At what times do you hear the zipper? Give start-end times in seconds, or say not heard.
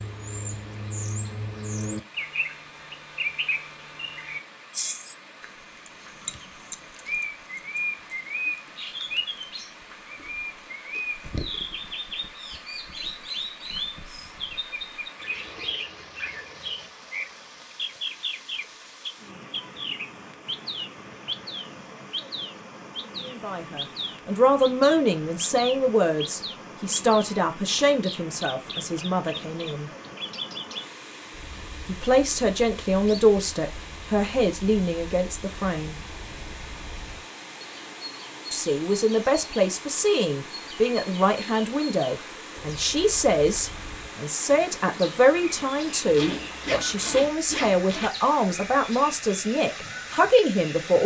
46.0-48.1.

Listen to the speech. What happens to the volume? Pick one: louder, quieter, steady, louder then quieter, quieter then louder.
steady.